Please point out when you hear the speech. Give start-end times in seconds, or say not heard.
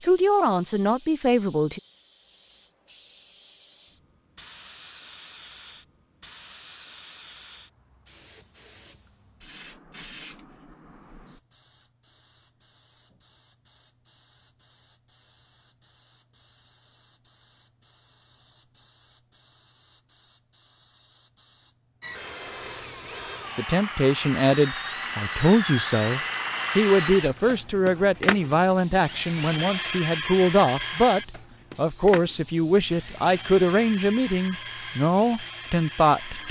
0.0-1.8, 23.6-36.4.